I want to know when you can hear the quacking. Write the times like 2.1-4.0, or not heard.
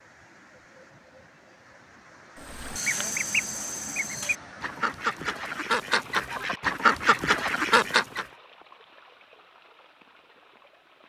2.4-8.2.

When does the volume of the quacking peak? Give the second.
7 s.